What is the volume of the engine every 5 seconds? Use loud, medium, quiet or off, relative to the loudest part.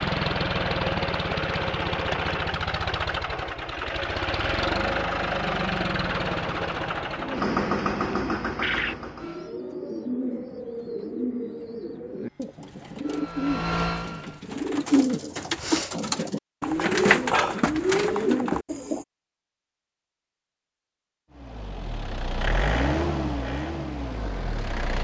loud, loud, medium, off, loud.